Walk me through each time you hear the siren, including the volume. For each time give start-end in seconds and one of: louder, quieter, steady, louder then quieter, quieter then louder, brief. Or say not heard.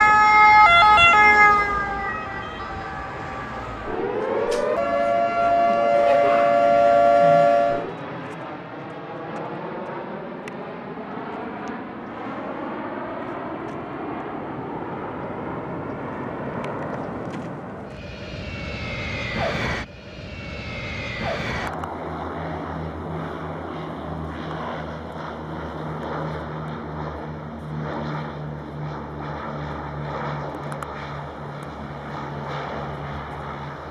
0.0-8.0 quieter then louder.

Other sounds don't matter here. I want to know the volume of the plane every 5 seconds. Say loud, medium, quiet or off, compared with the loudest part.
medium, loud, loud, loud, loud, loud, loud.